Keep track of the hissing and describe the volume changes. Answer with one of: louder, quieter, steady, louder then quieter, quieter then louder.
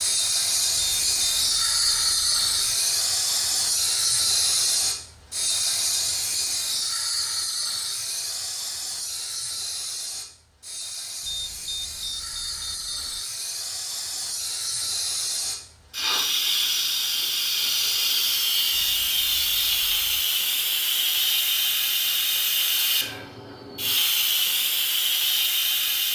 quieter then louder.